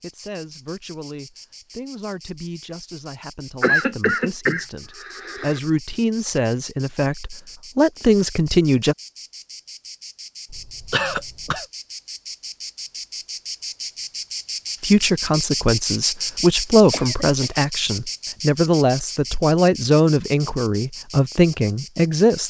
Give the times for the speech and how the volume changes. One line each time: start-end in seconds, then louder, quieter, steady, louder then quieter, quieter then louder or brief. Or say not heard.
0.0-8.9 louder
14.8-22.4 steady.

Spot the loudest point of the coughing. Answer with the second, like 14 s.
4 s.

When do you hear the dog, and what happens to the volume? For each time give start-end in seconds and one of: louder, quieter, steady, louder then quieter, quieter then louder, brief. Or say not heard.
not heard.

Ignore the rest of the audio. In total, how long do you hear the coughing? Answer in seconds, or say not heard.
4 s.